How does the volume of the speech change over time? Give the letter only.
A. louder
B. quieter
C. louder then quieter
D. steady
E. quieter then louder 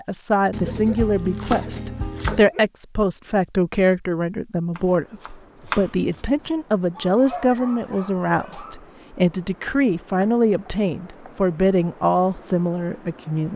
D.